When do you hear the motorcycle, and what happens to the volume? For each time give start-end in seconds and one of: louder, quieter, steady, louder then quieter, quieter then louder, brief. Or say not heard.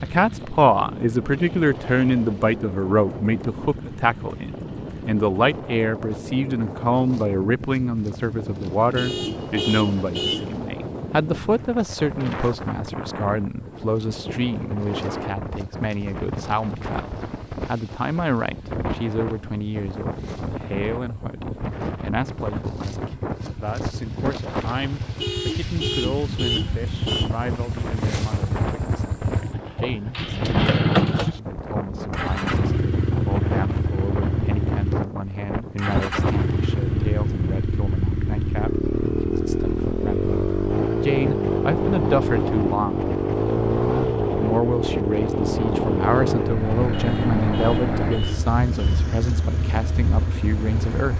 0.0-51.1 louder.